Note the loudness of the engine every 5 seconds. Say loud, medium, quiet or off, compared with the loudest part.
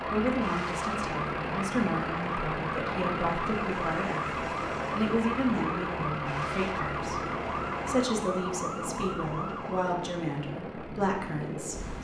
loud, loud, quiet.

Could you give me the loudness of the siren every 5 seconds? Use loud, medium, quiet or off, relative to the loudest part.
loud, loud, off.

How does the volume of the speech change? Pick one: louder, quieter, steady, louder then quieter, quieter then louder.
steady.